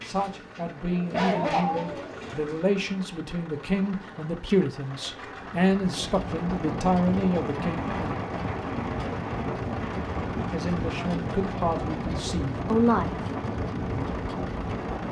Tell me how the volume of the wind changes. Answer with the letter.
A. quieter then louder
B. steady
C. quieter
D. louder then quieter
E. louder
B.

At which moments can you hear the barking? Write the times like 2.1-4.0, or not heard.
1.1-2.6.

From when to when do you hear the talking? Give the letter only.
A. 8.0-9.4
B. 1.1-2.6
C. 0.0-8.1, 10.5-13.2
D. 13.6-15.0
C.